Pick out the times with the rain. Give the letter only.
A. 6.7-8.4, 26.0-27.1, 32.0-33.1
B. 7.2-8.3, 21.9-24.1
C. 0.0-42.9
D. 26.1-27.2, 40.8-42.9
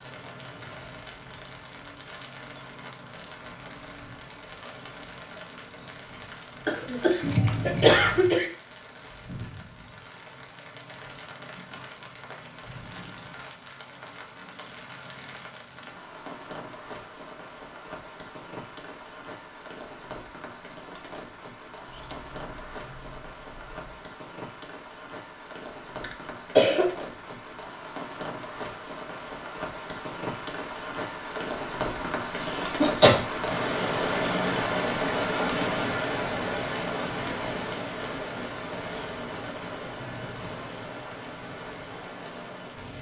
C.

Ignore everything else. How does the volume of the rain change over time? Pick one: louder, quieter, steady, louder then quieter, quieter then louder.
louder.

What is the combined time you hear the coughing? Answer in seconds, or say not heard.
4 s.